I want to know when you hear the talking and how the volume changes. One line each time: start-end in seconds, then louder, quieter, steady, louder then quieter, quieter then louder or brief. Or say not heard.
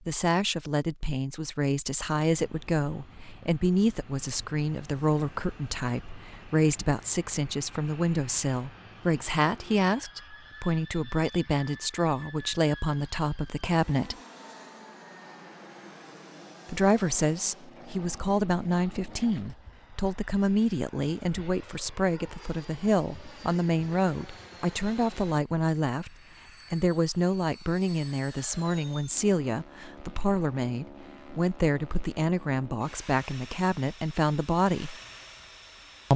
0.1-14.2 steady
16.6-35.0 steady.